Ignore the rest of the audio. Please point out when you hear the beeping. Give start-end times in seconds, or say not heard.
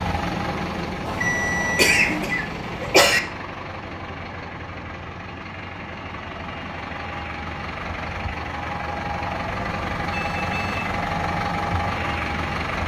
1.1-2.3, 10.1-10.8.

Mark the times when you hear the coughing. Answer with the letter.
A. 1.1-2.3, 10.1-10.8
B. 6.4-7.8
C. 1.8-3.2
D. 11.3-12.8
C.